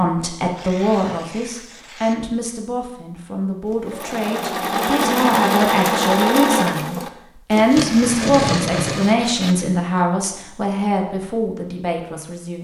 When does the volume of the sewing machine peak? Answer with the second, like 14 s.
6 s.